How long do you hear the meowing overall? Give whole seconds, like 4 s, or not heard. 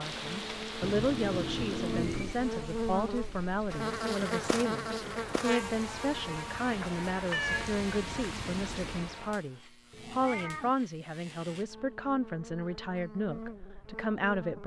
3 s.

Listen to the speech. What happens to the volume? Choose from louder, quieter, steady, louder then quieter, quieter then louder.
steady.